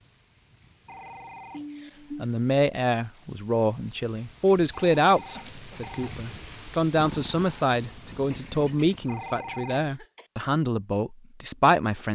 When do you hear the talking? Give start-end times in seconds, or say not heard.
2.1-12.0.